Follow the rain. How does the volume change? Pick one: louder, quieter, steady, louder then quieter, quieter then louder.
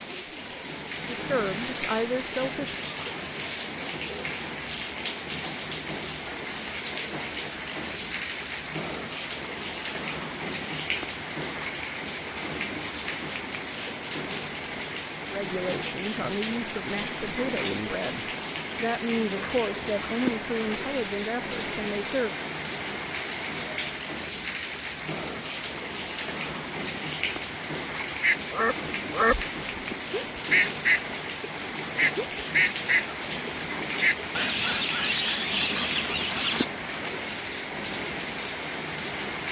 steady.